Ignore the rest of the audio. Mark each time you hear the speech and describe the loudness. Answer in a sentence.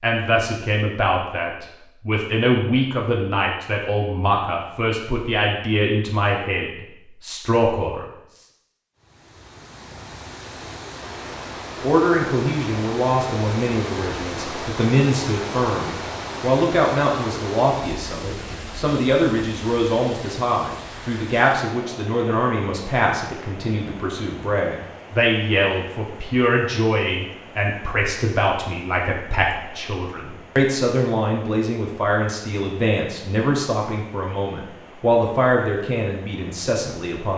You can hear the speech from 0.0 to 8.4 s, at a steady volume; and from 11.8 to 37.3 s, at a steady volume.